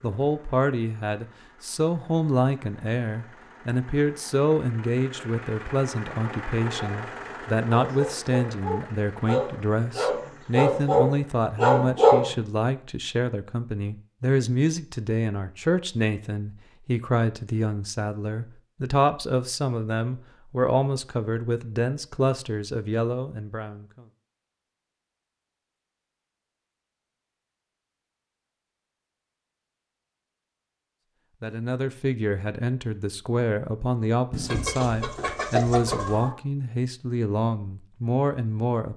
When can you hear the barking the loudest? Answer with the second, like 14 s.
12 s.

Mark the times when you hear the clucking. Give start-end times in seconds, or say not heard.
34.3-36.4.